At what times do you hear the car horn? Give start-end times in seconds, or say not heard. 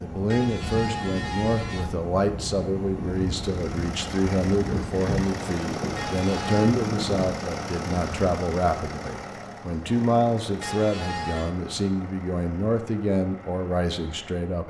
0.3-1.9, 6.0-6.8, 10.6-11.6.